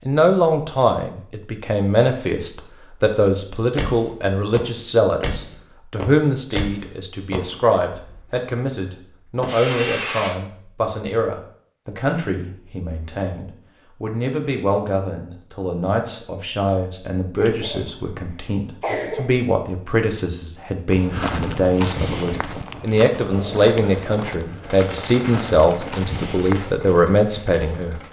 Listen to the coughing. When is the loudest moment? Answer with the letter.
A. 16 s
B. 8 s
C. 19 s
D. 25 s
C.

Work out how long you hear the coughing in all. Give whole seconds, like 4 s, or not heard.
2 s.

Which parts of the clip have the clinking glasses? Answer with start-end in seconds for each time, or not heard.
not heard.